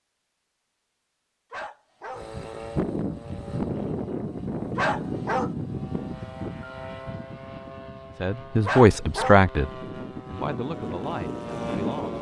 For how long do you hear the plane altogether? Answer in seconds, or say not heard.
10 s.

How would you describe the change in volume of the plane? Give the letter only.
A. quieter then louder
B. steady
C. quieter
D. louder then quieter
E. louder
A.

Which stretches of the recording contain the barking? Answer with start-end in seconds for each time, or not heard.
1.5-2.2, 4.8-5.5, 8.7-9.4.